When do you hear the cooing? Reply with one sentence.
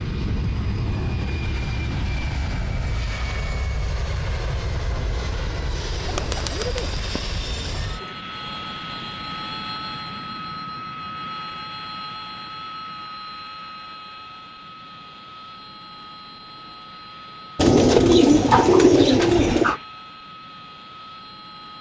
The cooing can be heard from 6.0 to 8.1 s and from 17.6 to 19.8 s.